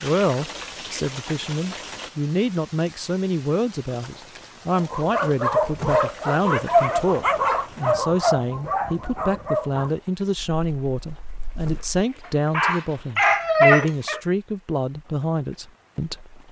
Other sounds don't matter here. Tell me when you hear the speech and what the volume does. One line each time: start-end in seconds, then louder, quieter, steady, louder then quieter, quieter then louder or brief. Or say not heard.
0.0-16.4 steady.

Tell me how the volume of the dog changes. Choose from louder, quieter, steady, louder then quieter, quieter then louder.
quieter then louder.